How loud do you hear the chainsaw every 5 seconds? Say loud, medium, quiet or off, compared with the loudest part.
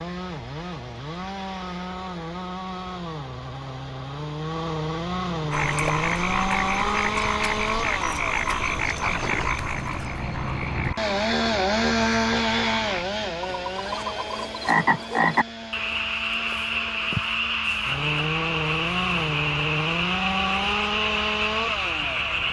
medium, loud, loud, medium, loud.